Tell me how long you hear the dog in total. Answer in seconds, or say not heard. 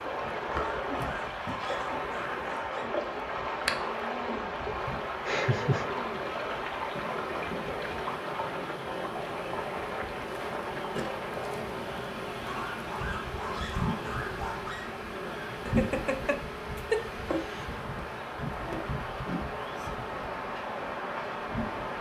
5 s.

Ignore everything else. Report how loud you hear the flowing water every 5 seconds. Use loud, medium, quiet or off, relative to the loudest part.
loud, loud, medium, medium, loud.